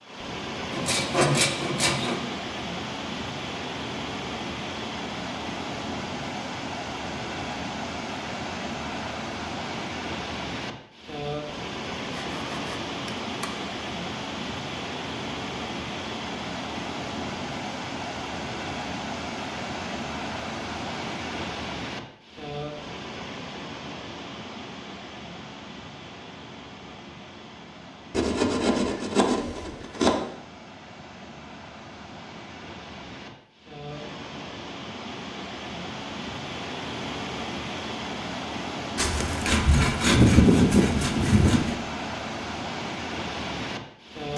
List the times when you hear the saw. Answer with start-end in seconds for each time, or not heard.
0.7-2.2, 12.1-13.5, 28.1-30.1, 39.0-41.8.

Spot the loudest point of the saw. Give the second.
40 s.